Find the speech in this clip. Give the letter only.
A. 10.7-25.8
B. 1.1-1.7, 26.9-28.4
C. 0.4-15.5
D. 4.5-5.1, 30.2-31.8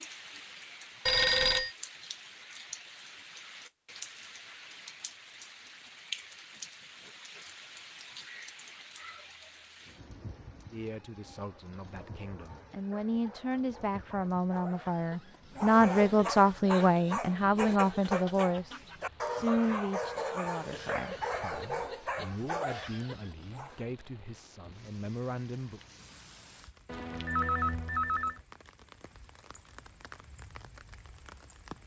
A.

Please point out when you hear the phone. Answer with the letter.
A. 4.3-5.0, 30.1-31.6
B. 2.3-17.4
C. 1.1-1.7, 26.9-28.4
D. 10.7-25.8
C.